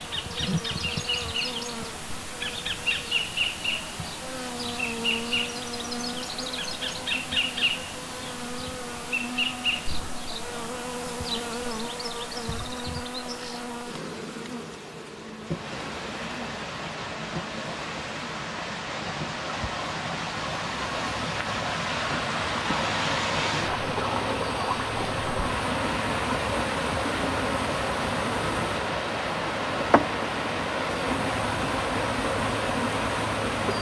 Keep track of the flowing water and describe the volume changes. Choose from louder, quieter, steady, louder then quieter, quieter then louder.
louder.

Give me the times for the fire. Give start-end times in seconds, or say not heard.
not heard.